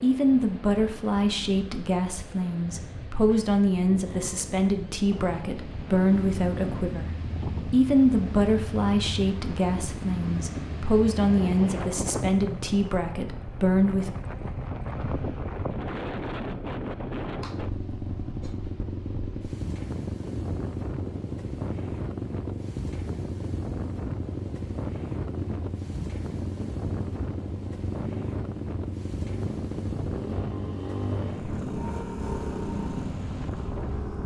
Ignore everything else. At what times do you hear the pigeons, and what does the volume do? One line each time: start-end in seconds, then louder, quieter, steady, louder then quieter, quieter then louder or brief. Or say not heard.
not heard.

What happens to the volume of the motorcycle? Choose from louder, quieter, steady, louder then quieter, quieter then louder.
louder.